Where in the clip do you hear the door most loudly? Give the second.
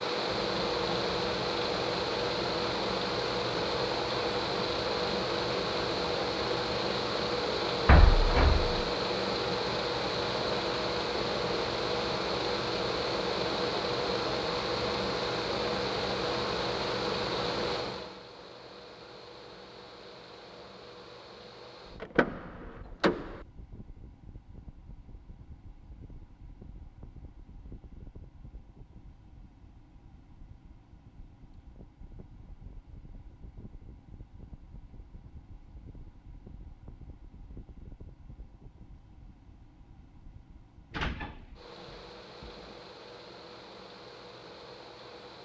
8 s.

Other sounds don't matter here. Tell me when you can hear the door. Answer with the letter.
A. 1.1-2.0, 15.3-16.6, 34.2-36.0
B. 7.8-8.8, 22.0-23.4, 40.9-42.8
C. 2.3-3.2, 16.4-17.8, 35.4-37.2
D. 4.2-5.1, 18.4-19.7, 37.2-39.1
B.